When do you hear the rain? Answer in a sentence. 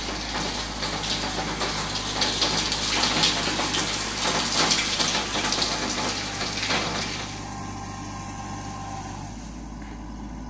You can hear the rain from 0.0 to 7.5 s.